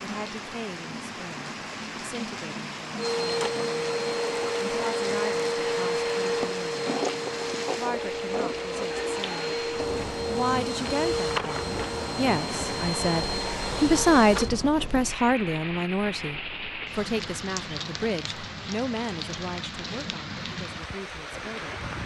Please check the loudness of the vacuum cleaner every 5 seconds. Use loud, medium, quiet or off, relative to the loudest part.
loud, loud, loud, off, off.